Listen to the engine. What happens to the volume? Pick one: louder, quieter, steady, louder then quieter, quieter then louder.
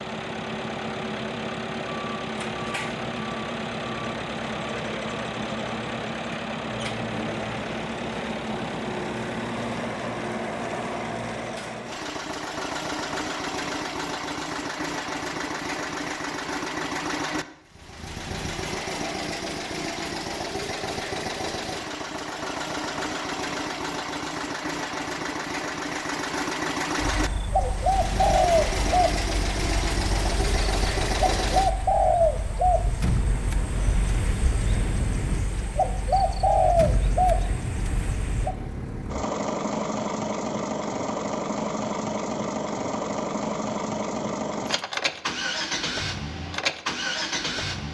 steady.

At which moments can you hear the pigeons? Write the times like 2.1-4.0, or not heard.
26.9-38.5.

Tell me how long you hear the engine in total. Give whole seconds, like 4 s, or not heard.
48 s.